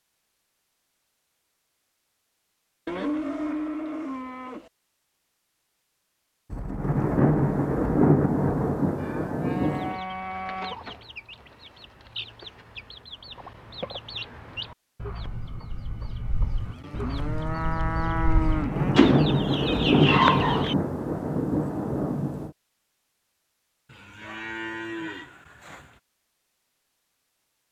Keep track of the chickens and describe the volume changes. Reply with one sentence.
The volume of the chickens goes up.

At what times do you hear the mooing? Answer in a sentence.
The mooing can be heard from 2.9 to 4.7 s, from 8.9 to 10.8 s, from 16.6 to 18.9 s and from 23.9 to 26.0 s.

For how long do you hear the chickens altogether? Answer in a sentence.
The chickens can be heard for 11 seconds in total.